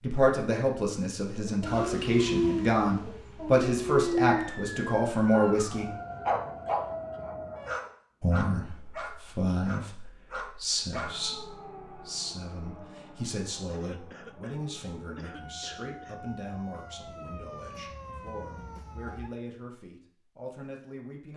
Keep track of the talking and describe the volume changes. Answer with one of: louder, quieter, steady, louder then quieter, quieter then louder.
quieter.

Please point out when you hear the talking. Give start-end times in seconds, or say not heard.
0.0-5.9, 8.2-21.3.